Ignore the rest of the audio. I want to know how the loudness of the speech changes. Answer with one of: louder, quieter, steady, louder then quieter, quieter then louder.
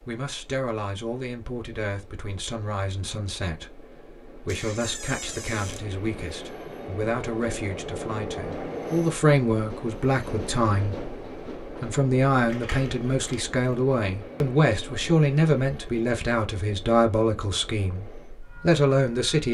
louder.